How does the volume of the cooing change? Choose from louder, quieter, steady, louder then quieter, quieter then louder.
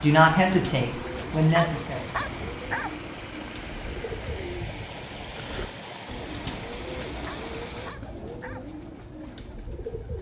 steady.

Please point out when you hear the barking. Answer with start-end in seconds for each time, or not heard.
1.5-3.0, 7.2-8.7.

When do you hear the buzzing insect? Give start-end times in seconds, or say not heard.
not heard.